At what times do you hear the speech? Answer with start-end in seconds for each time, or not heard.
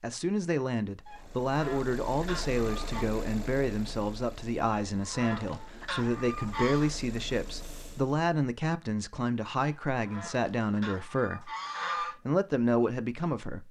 0.0-13.6.